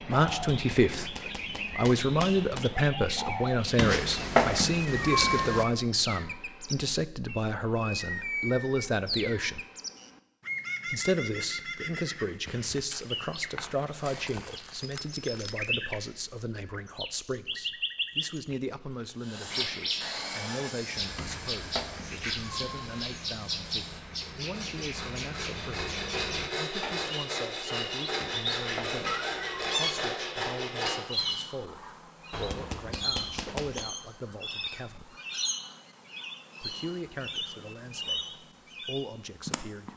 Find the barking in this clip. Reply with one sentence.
You can't hear the barking here.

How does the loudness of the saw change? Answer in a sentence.
The volume of the saw goes down, then up.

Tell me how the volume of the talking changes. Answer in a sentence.
The volume of the talking goes down.